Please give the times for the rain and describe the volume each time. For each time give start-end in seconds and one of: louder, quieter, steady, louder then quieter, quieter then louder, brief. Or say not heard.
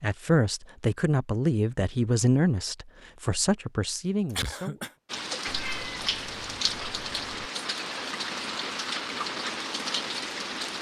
5.0-10.7 steady.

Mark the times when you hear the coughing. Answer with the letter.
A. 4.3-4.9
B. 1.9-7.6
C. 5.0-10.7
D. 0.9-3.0
A.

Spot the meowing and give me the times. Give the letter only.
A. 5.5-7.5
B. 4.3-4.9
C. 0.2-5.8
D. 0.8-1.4
A.